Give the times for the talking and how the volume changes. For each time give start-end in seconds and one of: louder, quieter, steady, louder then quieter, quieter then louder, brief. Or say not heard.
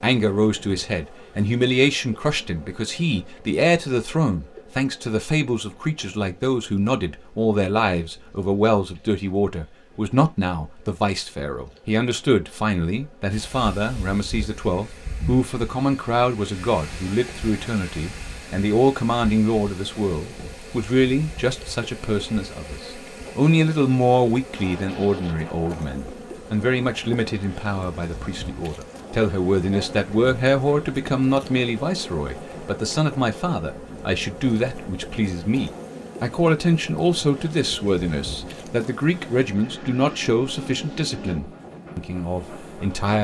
0.0-43.1 steady.